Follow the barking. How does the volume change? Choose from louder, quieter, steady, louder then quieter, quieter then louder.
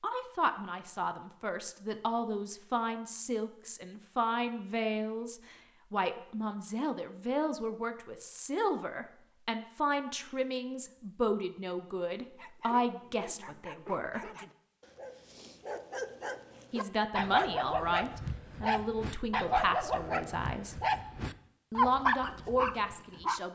louder.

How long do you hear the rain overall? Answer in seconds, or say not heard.
not heard.